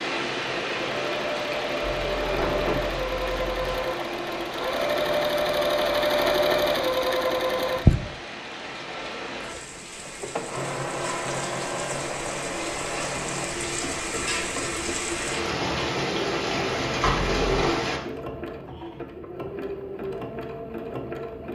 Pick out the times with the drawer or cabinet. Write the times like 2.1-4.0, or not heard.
1.8-3.8, 17.1-17.6.